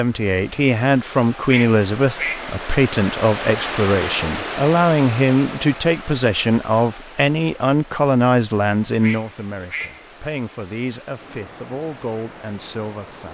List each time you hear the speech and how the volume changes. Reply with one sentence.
The speech can be heard from 0.0 to 13.2 s, getting quieter.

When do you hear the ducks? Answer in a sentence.
The ducks can be heard from 1.4 to 2.5 s and from 9.0 to 10.1 s.